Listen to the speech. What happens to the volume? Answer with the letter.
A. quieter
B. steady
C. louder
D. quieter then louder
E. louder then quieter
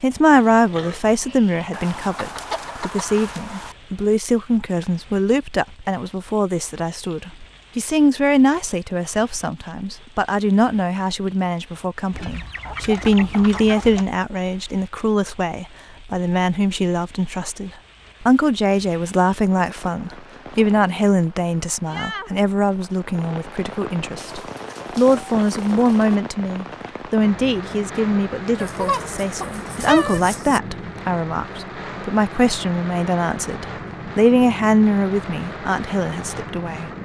B.